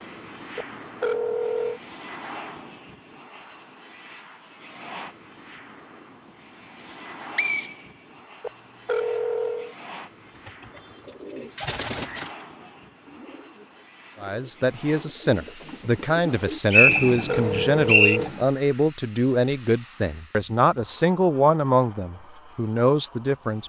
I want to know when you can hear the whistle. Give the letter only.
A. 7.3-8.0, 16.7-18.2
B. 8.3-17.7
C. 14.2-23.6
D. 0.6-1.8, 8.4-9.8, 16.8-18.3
A.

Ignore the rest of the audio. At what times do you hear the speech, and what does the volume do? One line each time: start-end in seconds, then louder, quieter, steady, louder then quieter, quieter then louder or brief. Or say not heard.
14.2-23.6 steady.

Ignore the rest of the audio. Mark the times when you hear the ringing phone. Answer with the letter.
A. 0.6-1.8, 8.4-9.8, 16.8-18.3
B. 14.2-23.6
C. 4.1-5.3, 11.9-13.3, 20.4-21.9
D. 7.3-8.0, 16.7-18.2
A.